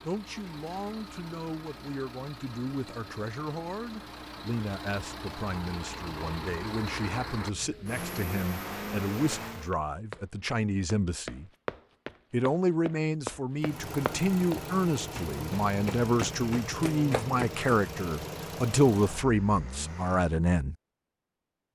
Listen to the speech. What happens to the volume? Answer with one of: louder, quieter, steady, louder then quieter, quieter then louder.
louder.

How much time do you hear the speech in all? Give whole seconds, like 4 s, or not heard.
20 s.